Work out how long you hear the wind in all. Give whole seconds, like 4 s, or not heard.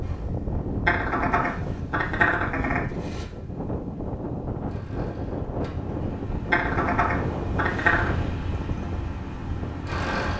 10 s.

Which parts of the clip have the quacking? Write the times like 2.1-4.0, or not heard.
0.8-2.8, 6.5-8.1.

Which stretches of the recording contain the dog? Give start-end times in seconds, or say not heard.
not heard.